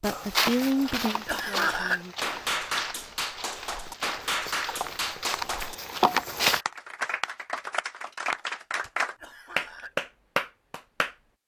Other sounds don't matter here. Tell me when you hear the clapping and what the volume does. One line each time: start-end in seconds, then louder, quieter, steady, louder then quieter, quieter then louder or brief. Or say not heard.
2.2-11.2 louder.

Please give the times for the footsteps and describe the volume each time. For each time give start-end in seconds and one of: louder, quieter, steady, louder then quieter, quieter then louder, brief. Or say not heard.
0.0-6.7 quieter then louder.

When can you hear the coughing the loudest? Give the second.
2 s.